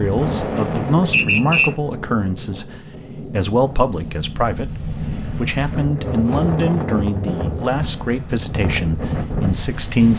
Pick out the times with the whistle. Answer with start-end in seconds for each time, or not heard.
1.1-1.7.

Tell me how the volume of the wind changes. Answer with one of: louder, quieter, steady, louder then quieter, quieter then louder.
quieter then louder.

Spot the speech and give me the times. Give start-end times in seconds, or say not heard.
0.0-10.1.